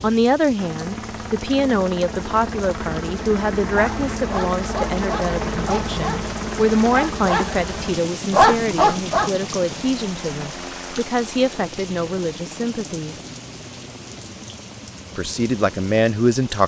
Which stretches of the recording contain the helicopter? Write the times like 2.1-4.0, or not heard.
0.0-16.6.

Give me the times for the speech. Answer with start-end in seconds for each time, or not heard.
0.0-13.2, 15.2-16.6.